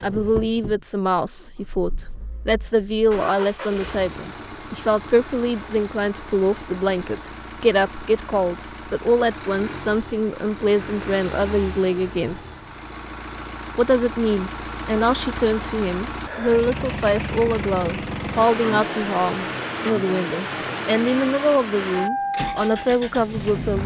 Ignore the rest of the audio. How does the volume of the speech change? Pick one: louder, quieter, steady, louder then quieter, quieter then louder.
steady.